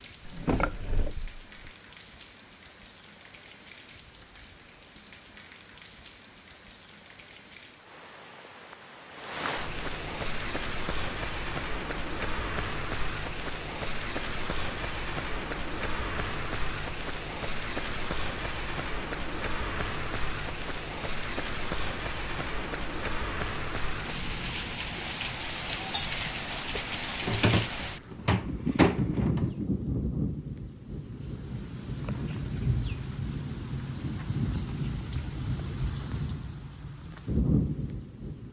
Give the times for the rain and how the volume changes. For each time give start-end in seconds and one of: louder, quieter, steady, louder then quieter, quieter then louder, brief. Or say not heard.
0.0-38.4 louder.